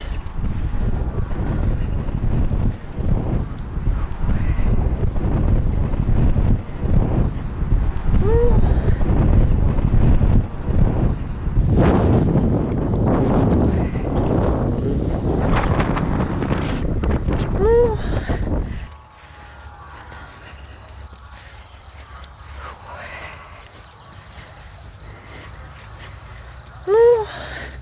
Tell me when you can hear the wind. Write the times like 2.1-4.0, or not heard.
0.0-18.9.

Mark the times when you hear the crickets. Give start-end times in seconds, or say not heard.
0.0-27.7.